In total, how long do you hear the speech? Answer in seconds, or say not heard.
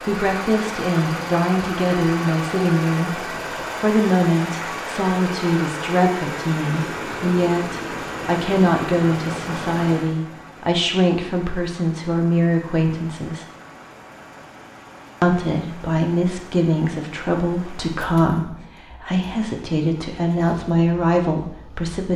20 s.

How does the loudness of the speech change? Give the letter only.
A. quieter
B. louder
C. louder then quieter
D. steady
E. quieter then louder
D.